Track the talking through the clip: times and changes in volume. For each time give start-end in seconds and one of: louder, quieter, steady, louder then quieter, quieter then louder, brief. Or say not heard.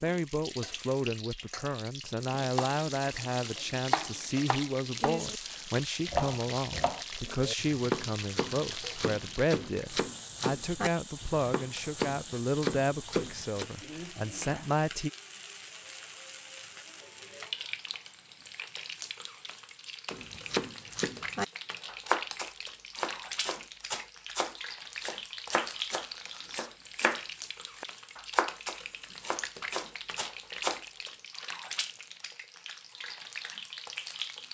0.0-15.1 steady.